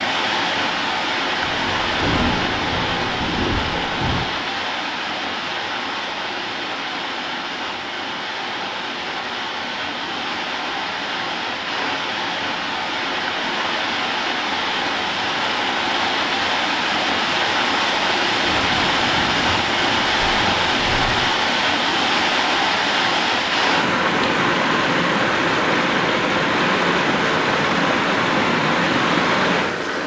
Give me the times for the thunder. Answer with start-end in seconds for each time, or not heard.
1.4-4.2, 18.4-21.4.